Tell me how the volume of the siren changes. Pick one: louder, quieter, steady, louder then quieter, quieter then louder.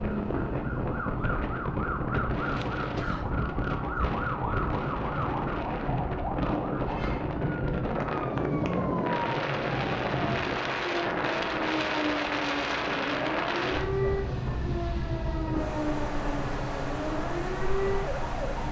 steady.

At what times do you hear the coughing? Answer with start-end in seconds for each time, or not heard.
2.5-3.4.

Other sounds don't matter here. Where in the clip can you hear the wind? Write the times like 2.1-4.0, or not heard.
0.0-18.6.